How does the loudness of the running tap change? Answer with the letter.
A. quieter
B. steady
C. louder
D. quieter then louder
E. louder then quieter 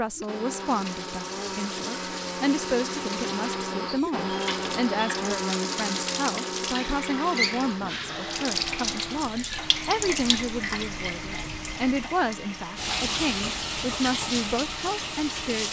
C.